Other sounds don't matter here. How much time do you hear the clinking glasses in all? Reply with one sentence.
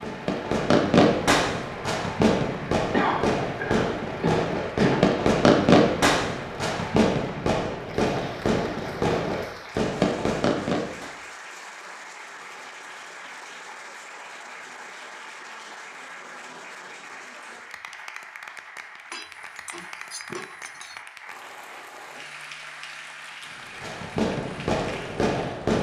The clinking glasses can be heard for 2 seconds in total.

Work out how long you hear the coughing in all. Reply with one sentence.
You can hear the coughing for 2 seconds altogether.